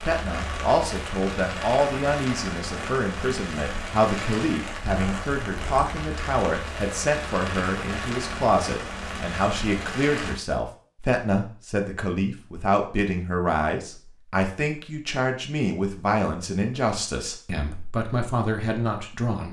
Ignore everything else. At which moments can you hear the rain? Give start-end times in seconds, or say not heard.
0.0-10.4.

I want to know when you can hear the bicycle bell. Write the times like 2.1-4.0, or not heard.
not heard.